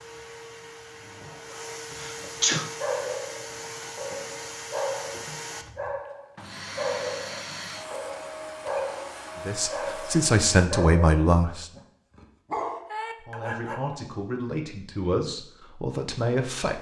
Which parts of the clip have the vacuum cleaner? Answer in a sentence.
The vacuum cleaner can be heard from 0.0 to 10.7 s.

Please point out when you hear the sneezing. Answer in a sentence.
The sneezing can be heard from 1.9 to 2.7 s.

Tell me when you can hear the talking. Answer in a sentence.
You can hear the talking from 9.4 to 11.7 s and from 13.2 to 16.7 s.